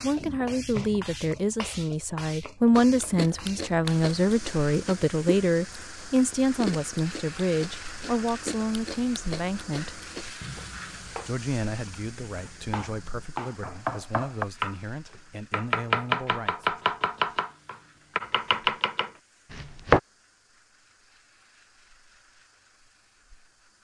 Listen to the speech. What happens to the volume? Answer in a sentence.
The volume of the speech goes down.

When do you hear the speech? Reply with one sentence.
You can hear the speech from 0.0 to 9.9 s and from 11.2 to 16.8 s.